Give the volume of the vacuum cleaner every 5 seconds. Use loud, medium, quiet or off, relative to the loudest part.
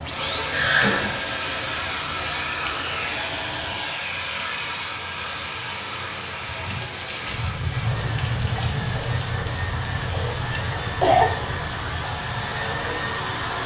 loud, medium, loud.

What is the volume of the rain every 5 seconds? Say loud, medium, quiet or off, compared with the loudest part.
medium, loud, loud.